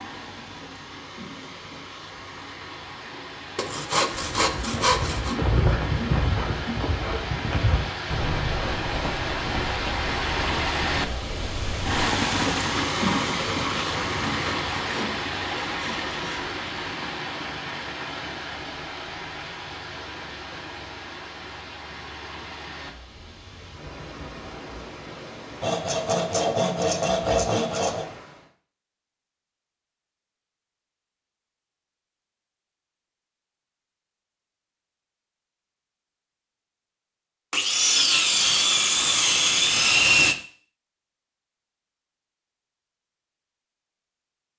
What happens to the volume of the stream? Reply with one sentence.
The volume of the stream goes up, then down.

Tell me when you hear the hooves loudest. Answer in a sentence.
The loudest moment of the hooves is at 6 seconds.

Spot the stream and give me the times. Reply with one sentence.
You can hear the stream from 0.0 to 28.5 s.